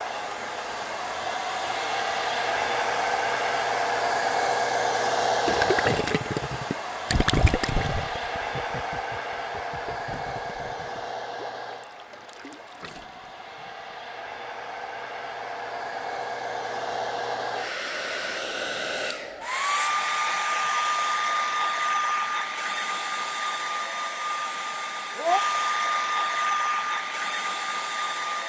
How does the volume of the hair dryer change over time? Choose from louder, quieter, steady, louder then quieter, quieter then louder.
quieter then louder.